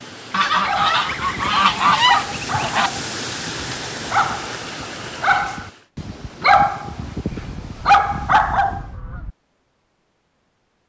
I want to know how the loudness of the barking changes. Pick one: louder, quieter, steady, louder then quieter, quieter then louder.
louder.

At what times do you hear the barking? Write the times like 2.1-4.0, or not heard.
0.6-8.8.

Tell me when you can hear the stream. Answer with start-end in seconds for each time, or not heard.
0.0-5.9.